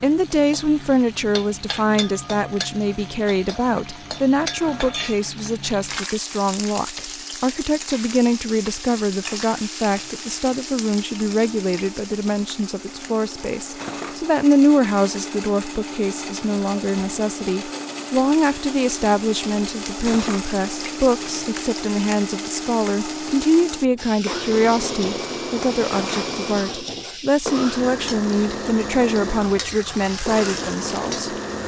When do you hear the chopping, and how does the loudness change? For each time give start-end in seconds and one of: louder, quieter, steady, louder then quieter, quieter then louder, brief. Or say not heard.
not heard.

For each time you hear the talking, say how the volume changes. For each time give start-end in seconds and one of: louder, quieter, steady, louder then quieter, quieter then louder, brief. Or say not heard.
0.0-31.4 steady.